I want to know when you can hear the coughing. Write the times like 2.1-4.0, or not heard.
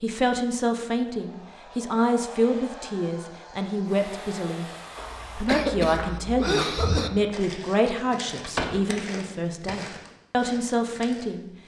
5.5-7.1.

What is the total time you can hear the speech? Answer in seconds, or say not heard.
11 s.